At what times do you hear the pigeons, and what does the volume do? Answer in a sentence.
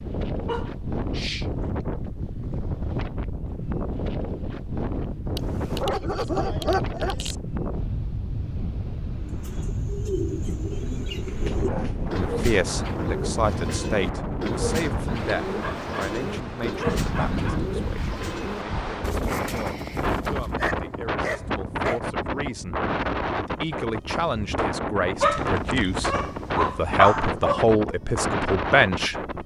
The pigeons can be heard from 9.2 to 20.5 s, at a steady volume.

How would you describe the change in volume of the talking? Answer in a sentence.
The loudness of the talking goes down, then up.